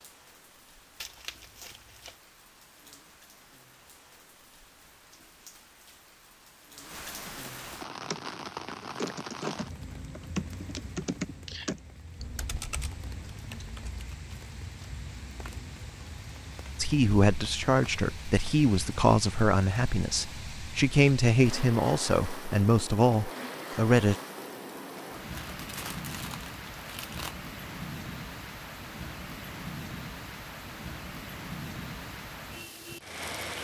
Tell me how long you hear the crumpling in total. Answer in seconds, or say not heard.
3 s.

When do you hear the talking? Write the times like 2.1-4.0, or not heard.
16.8-24.1.